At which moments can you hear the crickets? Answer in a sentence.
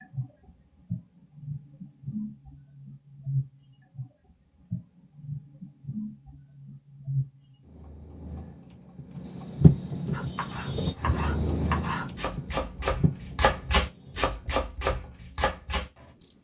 You can hear the crickets from 0.0 to 16.3 s.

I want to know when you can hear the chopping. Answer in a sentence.
The chopping can be heard from 10.1 to 16.1 s.